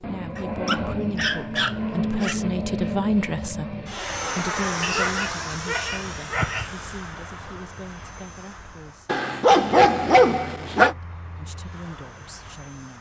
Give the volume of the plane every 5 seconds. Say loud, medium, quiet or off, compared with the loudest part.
loud, medium, quiet.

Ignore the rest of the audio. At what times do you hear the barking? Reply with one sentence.
You can hear the barking from 0.3 to 2.4 s, from 4.8 to 6.8 s and from 9.1 to 10.9 s.